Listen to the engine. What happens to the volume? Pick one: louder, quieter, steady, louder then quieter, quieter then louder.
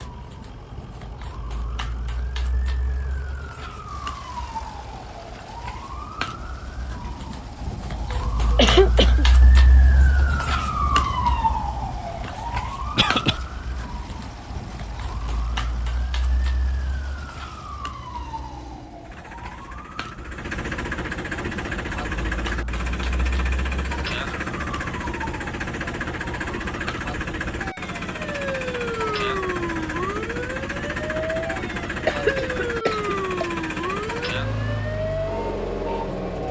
louder.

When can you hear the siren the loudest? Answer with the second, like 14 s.
11 s.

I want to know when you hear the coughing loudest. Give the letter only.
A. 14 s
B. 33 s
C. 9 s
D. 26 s
C.